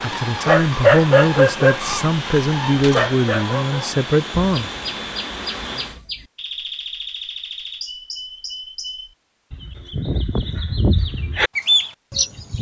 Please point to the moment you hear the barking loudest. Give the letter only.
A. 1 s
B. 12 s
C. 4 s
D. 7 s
A.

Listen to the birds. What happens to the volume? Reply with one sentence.
The volume of the birds goes up.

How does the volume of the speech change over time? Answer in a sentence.
The loudness of the speech stays about the same.